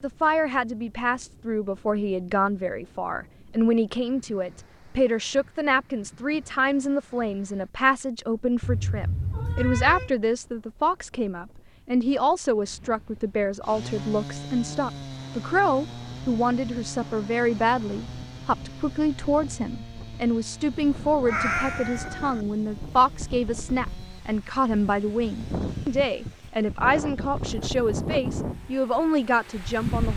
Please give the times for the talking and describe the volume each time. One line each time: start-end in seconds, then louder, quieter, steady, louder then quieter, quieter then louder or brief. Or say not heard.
0.0-30.1 steady.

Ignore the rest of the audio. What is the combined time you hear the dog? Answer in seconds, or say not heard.
not heard.